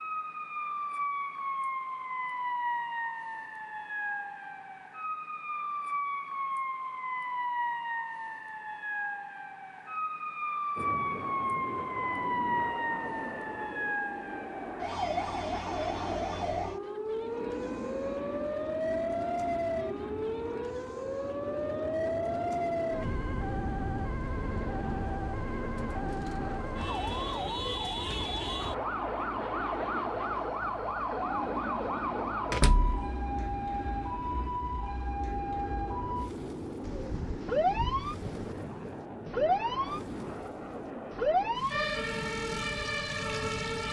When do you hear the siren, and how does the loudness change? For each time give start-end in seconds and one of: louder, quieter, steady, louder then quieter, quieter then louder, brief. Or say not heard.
0.0-43.8 steady.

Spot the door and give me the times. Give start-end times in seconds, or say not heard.
32.5-33.0.